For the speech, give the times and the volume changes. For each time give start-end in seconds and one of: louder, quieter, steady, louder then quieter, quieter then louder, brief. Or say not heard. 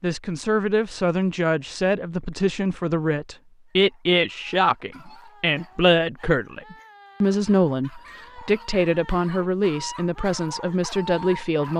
0.0-11.7 steady.